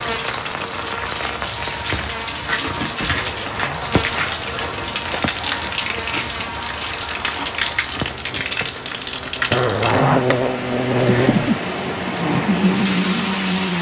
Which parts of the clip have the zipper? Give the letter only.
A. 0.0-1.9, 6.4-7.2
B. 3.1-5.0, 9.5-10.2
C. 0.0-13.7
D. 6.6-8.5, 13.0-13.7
B.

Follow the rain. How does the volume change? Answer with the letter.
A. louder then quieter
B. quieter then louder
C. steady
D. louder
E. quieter
C.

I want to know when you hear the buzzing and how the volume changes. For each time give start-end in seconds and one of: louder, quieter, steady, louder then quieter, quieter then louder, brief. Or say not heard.
0.0-13.7 louder.